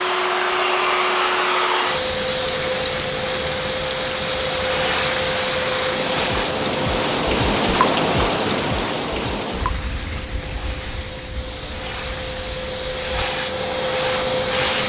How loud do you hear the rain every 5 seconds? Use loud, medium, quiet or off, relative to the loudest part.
medium, loud, quiet.